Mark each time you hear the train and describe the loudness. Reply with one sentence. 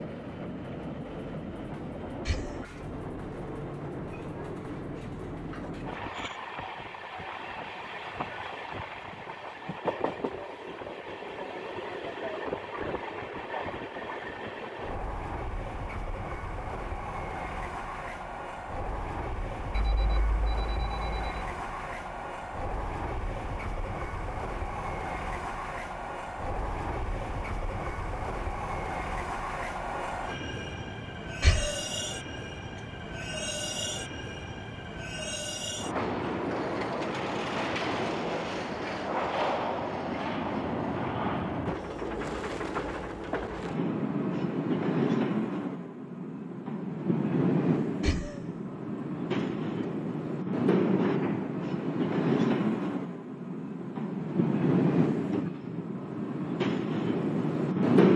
You can hear the train from 0.0 to 58.1 s, getting louder.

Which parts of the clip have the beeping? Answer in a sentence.
You can hear the beeping from 19.7 to 21.4 s.